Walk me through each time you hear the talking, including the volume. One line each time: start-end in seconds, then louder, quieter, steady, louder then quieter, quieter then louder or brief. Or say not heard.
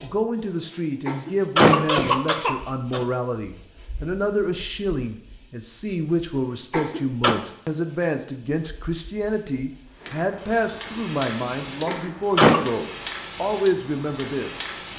0.0-14.7 steady.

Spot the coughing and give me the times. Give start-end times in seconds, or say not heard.
1.1-3.0, 6.7-7.3, 11.8-12.6.